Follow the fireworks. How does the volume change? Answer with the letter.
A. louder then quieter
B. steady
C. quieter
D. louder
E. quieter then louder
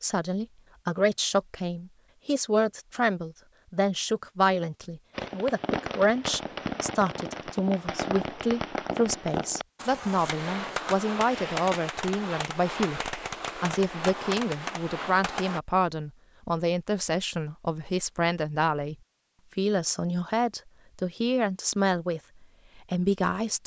B.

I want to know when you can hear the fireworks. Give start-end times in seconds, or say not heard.
5.1-15.6.